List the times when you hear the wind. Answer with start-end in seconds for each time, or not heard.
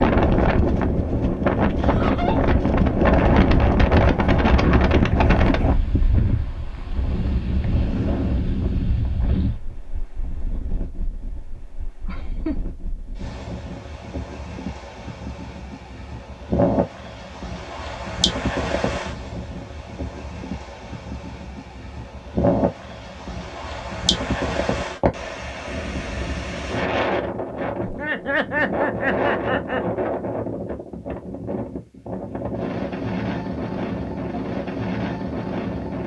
0.0-36.0.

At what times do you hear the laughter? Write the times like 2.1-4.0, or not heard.
1.8-2.5, 12.1-12.7, 27.8-29.8.